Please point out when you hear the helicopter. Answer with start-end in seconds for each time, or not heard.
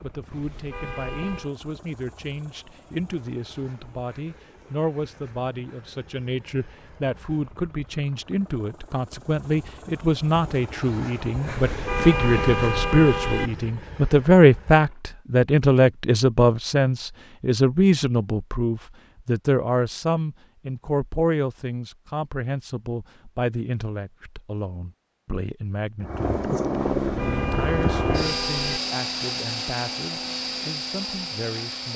0.0-15.1, 26.0-31.9.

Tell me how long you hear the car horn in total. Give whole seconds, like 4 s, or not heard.
5 s.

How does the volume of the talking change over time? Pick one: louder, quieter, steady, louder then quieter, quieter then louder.
louder then quieter.